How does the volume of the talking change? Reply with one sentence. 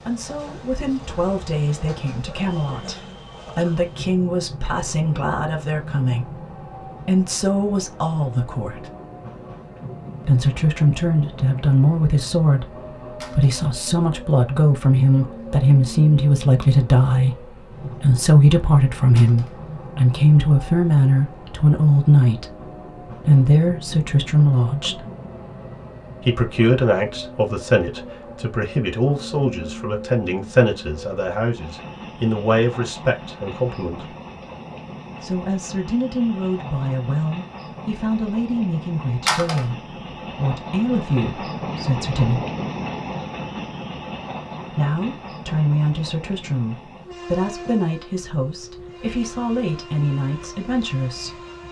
The volume of the talking goes up, then down.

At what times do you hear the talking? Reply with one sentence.
The talking can be heard from 0.1 to 8.8 s, from 10.2 to 25.1 s, from 26.2 to 34.1 s, from 35.2 to 42.4 s and from 44.7 to 51.4 s.